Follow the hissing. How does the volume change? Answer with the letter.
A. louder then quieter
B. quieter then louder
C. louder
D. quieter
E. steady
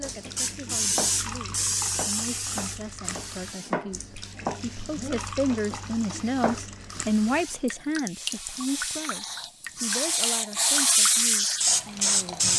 B.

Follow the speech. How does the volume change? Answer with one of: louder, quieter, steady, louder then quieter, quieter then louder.
louder then quieter.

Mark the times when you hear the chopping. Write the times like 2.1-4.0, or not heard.
0.0-7.0.